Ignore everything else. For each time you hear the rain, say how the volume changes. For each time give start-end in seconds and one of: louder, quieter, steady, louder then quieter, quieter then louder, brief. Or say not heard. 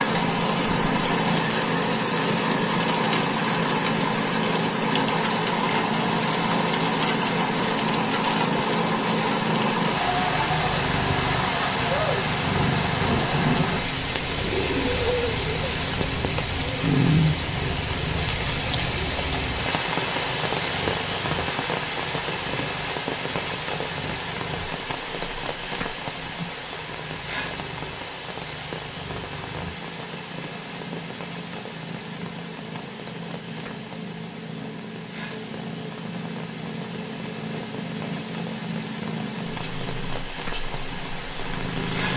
0.0-42.1 quieter.